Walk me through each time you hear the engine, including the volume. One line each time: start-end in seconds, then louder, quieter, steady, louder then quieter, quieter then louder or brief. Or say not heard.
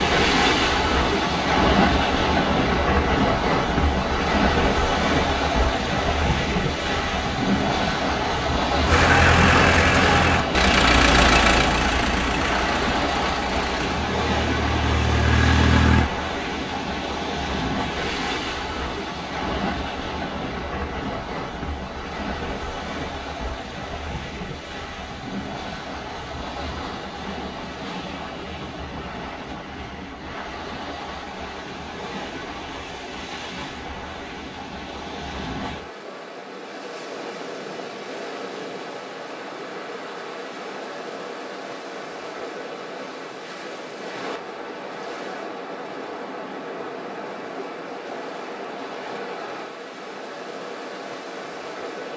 8.8-16.1 quieter then louder.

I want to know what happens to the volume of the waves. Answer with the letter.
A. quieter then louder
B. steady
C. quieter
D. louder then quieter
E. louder
C.